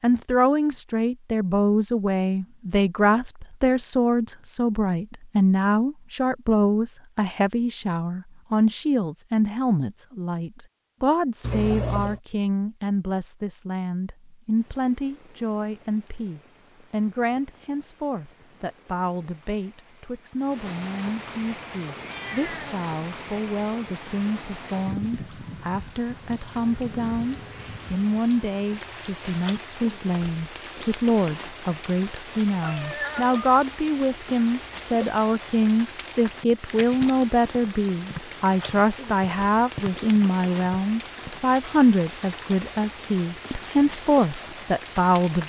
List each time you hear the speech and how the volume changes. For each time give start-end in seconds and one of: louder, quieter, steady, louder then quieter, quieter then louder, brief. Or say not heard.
0.0-45.4 quieter then louder.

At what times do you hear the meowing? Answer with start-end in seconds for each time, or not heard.
11.4-12.2, 21.9-22.9, 32.6-33.4.